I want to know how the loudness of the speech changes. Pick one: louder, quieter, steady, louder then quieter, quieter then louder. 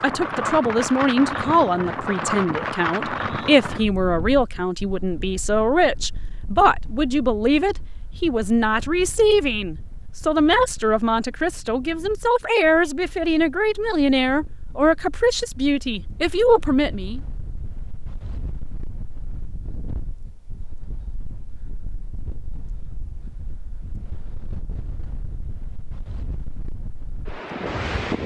steady.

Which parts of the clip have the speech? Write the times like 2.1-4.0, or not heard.
0.0-17.2.